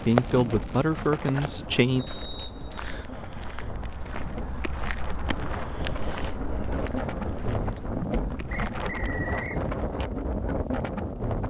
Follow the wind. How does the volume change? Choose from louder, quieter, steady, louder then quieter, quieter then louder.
louder.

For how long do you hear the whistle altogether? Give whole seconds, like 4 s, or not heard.
2 s.